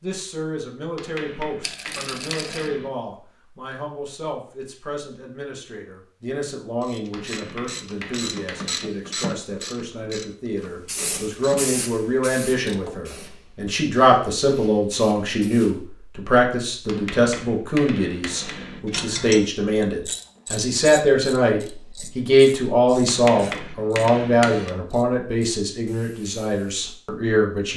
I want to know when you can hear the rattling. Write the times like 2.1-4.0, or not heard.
1.6-2.7.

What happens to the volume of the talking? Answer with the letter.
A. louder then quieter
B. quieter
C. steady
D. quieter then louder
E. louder
E.